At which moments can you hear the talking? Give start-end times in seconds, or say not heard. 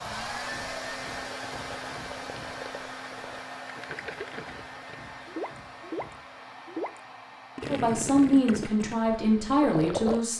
7.7-10.3.